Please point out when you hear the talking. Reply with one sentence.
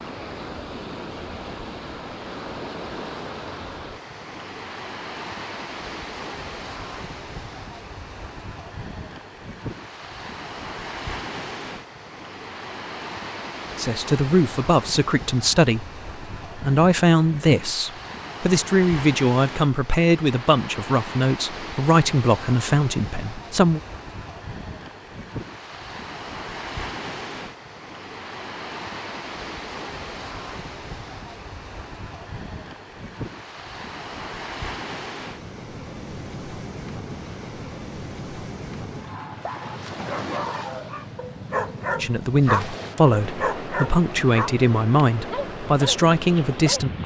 The talking can be heard from 13.8 to 23.8 s and from 42.0 to 47.0 s.